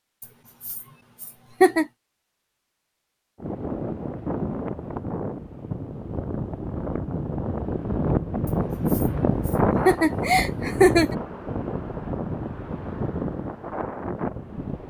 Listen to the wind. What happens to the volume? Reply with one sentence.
The loudness of the wind goes up, then down.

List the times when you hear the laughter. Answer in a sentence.
The laughter can be heard from 0.2 to 1.9 s and from 8.4 to 11.2 s.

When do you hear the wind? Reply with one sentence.
You can hear the wind from 3.4 to 14.8 s.